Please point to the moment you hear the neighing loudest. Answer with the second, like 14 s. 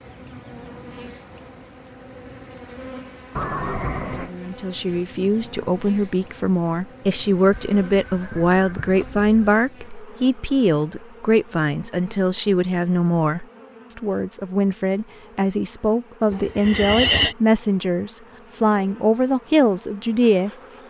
17 s.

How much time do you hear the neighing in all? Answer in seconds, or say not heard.
4 s.